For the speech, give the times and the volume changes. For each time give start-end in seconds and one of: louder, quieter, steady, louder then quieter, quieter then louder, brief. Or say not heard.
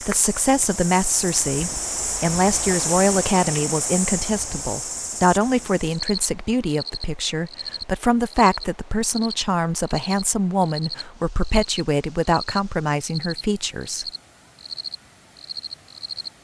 0.0-14.1 steady.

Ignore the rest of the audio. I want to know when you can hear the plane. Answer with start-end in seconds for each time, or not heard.
not heard.